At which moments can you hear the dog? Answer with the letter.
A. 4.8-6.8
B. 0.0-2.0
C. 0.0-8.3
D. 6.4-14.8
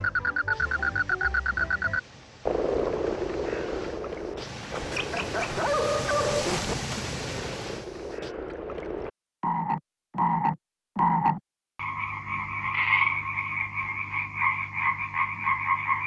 A.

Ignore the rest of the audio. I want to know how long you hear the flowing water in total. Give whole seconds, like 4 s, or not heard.
8 s.